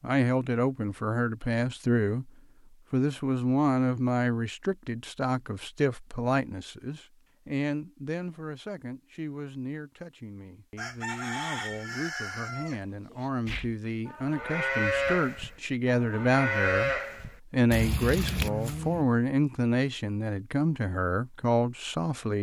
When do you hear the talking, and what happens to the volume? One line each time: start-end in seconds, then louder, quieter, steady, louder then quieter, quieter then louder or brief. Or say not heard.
0.0-2.3 brief
2.9-22.3 quieter then louder.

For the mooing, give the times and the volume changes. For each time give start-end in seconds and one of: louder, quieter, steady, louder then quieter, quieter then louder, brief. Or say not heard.
13.4-19.1 steady.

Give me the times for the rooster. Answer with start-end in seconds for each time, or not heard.
10.8-13.3.